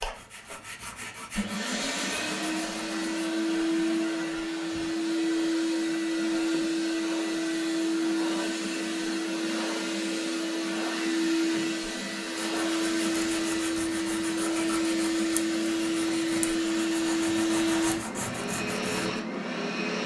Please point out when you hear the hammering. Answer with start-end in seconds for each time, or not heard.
not heard.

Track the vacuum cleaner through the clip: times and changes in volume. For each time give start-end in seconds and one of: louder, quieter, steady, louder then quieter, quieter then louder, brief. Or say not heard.
0.0-20.0 steady.